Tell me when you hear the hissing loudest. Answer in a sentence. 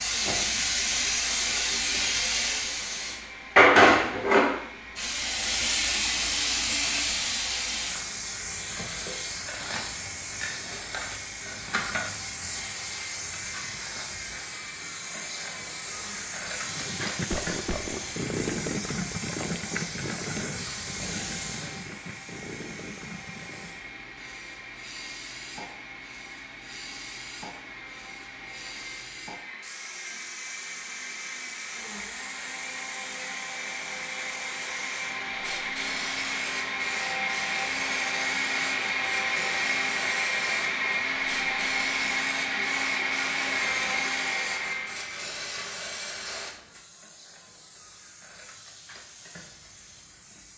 The loudest moment of the hissing is at 4 seconds.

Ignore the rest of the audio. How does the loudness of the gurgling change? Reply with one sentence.
The loudness of the gurgling goes down.